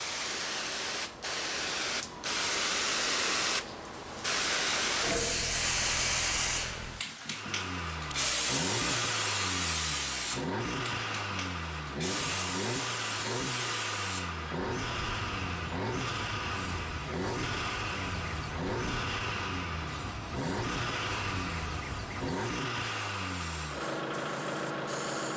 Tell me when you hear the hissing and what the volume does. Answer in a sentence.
You can hear the hissing from 0.0 to 25.3 s, getting quieter.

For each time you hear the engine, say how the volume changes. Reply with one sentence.
You can hear the engine from 7.2 to 25.3 s, at a steady volume.